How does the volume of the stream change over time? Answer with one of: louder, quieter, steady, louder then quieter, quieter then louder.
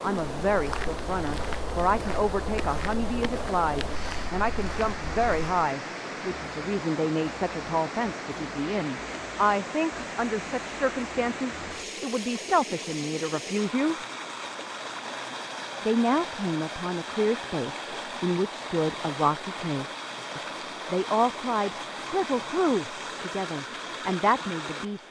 steady.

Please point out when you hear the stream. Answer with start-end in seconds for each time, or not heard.
0.0-25.0.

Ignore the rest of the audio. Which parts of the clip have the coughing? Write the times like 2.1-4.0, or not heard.
not heard.